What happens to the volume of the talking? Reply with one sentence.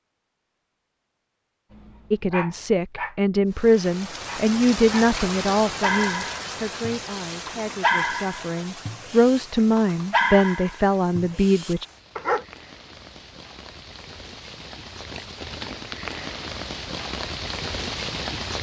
The volume of the talking goes down, then up.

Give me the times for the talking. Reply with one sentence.
You can hear the talking from 2.1 to 11.8 s.